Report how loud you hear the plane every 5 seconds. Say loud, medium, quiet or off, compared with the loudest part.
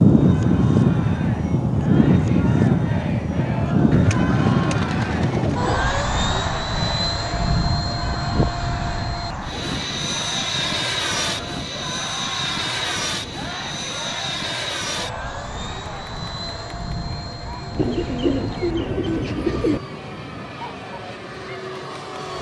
loud, medium, medium, quiet, quiet.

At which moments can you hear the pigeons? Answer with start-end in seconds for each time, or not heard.
3.9-5.8, 17.8-19.8.